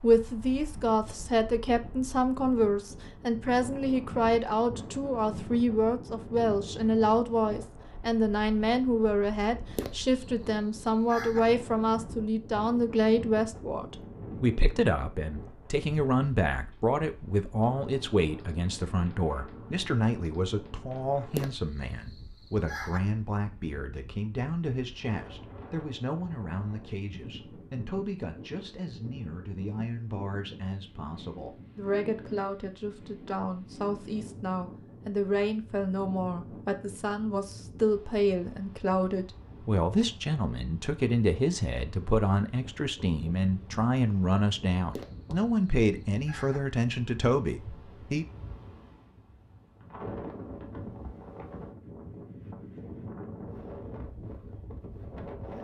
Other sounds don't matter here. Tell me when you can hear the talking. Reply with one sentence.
The talking can be heard from 0.0 to 48.2 s.